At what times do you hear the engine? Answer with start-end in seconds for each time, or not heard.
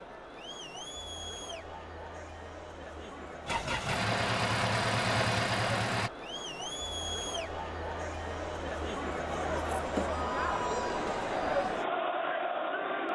3.5-6.1.